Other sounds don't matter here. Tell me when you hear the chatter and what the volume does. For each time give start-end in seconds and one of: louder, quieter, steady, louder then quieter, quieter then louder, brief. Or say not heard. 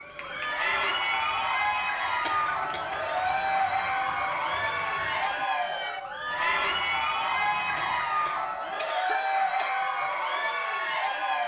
0.1-11.4 steady.